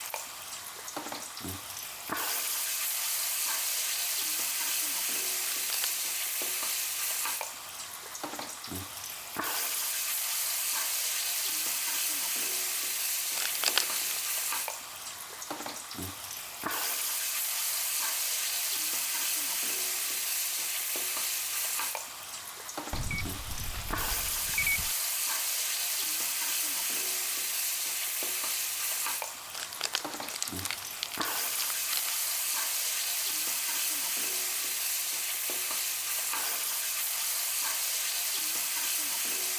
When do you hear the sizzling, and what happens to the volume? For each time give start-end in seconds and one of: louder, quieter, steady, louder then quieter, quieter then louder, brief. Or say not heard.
0.0-39.5 steady.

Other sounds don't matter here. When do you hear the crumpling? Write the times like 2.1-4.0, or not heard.
5.5-6.0, 13.3-14.3, 29.5-32.1.